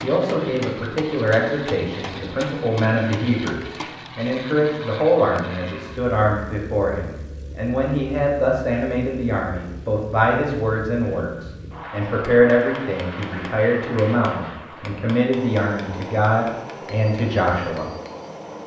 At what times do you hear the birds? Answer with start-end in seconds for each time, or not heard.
not heard.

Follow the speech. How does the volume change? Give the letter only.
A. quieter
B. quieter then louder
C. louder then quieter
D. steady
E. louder
D.